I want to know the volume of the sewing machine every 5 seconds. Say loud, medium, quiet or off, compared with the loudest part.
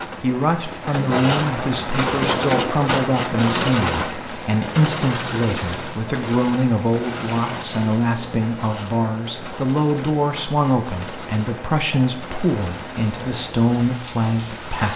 loud, medium, quiet.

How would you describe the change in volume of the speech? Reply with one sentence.
The volume of the speech stays about the same.